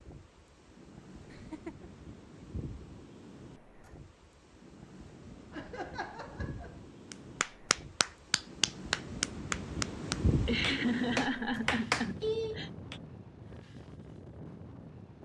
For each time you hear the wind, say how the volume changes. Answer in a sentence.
You can hear the wind from 0.0 to 15.2 s, getting louder then quieter.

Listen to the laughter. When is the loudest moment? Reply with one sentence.
The loudest moment of the laughter is at 11 seconds.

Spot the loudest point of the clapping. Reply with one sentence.
The loudest moment of the clapping is at 12 seconds.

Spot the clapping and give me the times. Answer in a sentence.
The clapping can be heard from 7.1 to 12.9 s.